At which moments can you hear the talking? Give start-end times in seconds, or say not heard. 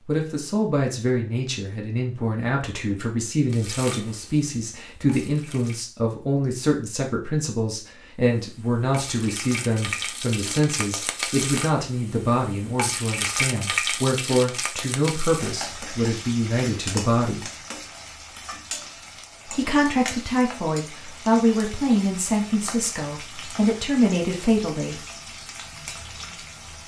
0.1-17.4, 19.4-25.0.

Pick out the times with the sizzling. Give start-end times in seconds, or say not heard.
3.5-5.8, 8.3-26.8.